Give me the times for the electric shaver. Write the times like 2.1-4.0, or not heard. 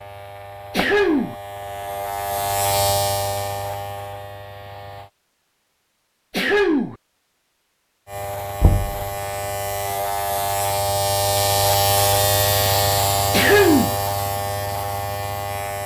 0.0-5.1, 8.1-15.8.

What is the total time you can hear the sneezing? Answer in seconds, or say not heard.
2 s.